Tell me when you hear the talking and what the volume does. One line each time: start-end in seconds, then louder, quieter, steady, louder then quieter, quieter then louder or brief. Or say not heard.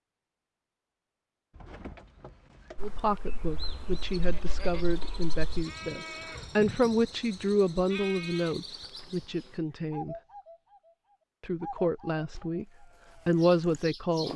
2.8-10.2 louder then quieter
11.4-12.7 brief
13.2-14.3 brief.